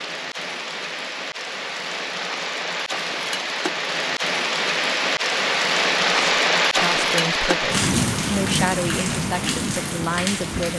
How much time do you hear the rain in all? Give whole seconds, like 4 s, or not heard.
11 s.